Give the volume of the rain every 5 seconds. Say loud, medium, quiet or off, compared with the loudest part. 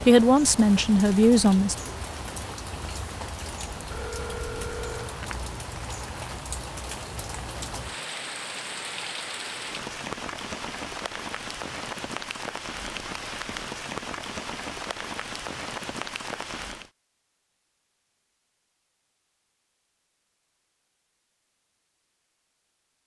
loud, loud, loud, loud, off.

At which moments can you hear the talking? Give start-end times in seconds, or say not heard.
0.1-1.8.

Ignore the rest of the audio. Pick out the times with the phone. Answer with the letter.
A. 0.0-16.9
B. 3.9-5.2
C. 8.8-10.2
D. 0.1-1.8
B.